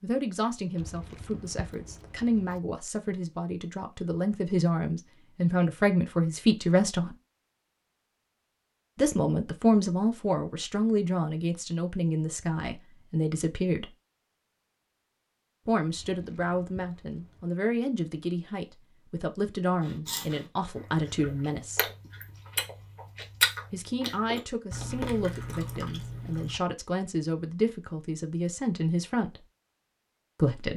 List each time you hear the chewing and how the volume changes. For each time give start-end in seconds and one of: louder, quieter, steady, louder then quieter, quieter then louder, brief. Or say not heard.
19.8-26.6 louder then quieter.